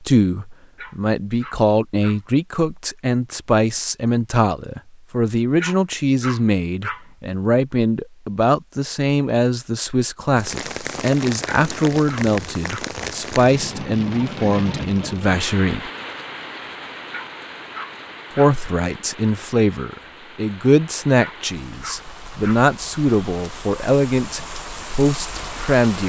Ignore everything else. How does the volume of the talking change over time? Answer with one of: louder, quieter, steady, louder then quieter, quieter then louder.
steady.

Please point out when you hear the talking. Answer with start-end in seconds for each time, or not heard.
0.0-15.9, 18.4-26.0.